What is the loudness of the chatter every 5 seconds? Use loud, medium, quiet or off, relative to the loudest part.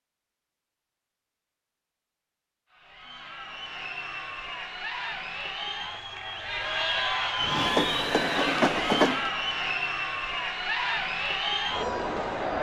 medium, loud, loud.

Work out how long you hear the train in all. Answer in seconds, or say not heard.
2 s.